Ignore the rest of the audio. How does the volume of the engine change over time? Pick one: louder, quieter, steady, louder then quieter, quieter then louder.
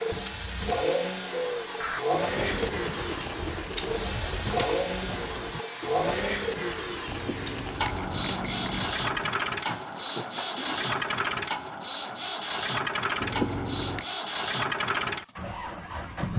steady.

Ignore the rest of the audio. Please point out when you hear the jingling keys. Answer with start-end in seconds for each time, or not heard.
0.1-0.9, 7.0-8.9, 13.2-14.1.